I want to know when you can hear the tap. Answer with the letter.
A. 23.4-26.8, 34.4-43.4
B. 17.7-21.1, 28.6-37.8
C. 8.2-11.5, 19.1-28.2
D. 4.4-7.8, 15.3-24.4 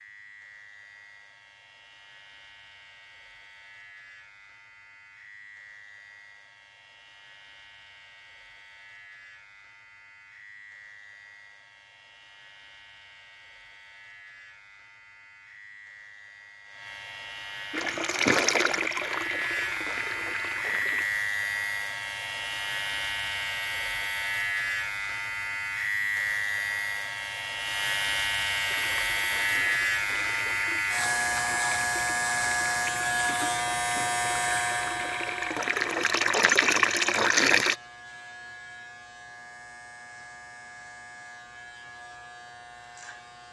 B.